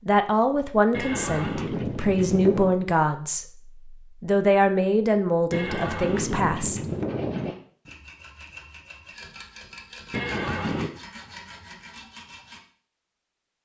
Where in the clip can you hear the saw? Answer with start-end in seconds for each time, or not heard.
7.0-12.6.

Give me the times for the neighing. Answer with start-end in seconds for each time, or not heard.
0.9-2.8, 5.5-7.5, 10.1-10.9.